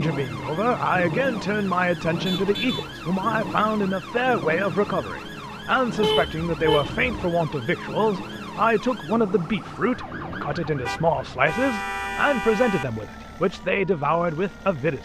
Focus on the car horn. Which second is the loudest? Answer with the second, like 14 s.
6 s.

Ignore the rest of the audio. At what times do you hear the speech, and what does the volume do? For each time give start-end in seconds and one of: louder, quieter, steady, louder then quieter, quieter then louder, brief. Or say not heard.
0.0-15.0 steady.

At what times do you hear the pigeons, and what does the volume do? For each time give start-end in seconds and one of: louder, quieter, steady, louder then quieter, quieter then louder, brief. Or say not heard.
not heard.